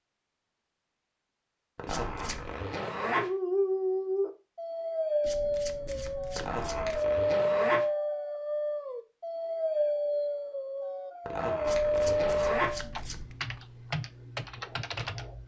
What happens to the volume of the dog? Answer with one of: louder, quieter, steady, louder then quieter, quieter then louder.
steady.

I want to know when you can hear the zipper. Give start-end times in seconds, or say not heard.
1.8-3.2, 6.3-7.8, 11.2-12.8.